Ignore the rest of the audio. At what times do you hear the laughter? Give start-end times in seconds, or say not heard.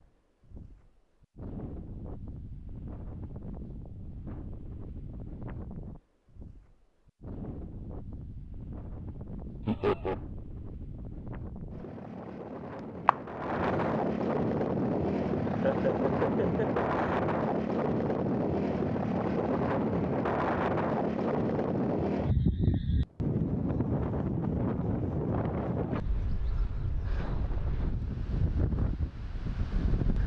9.7-10.2, 15.5-17.1.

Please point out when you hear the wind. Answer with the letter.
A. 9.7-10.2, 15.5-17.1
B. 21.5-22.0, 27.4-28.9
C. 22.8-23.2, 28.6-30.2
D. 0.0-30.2
D.